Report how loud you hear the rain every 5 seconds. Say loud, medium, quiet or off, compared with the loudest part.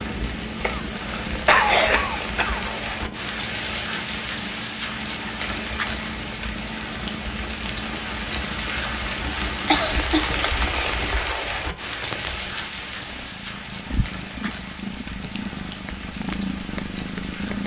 loud, loud, loud, medium.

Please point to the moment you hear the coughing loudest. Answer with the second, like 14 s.
2 s.